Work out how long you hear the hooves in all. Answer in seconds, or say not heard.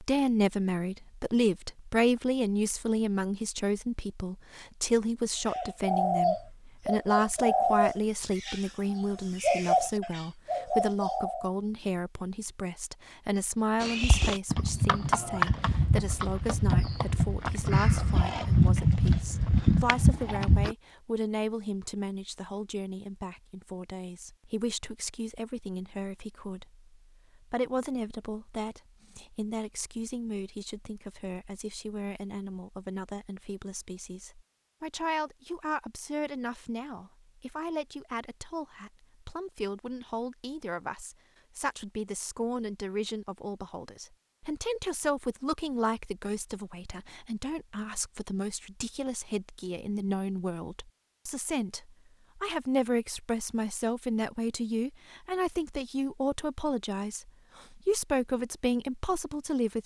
7 s.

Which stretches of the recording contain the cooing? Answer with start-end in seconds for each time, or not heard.
5.5-11.5.